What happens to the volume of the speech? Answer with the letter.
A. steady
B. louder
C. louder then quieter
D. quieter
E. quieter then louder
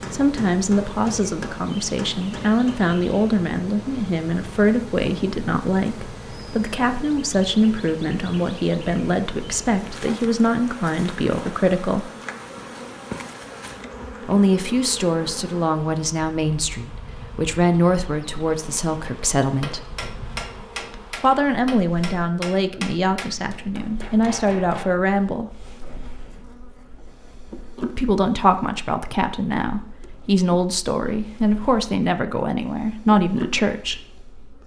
A.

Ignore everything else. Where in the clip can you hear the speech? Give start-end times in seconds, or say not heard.
0.1-12.1, 14.2-19.9, 21.2-25.5, 27.9-34.0.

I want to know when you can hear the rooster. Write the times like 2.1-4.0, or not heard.
not heard.